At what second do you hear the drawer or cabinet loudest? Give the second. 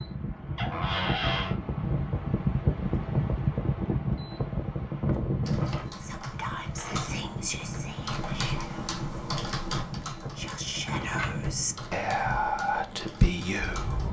1 s.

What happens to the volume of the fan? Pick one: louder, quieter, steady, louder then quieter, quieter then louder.
quieter.